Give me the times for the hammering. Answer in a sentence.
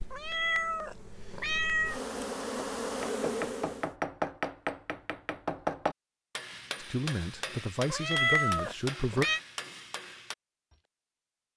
The hammering can be heard from 3.0 to 10.3 s.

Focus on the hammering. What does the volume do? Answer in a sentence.
The loudness of the hammering goes down.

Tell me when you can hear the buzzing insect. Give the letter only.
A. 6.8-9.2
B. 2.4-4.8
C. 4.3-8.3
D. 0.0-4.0
D.